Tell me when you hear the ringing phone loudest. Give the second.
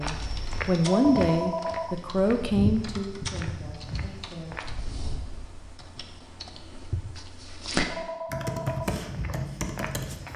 1 s.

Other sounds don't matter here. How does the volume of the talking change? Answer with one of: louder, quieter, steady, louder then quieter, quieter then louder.
quieter.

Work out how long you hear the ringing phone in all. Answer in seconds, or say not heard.
2 s.